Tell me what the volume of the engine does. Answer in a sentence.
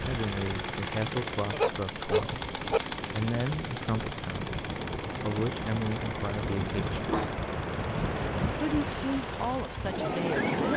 The volume of the engine goes down.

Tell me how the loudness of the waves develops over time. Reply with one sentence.
The volume of the waves goes up.